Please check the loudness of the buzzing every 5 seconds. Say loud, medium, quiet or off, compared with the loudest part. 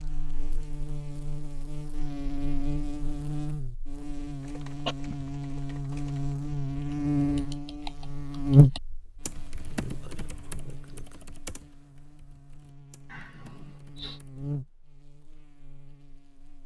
medium, loud, quiet, quiet.